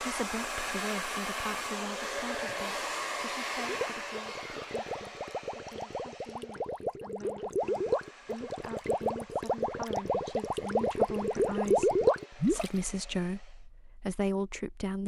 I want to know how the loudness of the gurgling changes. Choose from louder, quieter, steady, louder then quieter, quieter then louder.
louder.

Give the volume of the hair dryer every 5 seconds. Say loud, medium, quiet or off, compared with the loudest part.
loud, quiet, quiet.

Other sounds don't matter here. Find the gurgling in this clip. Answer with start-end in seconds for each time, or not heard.
3.5-12.7.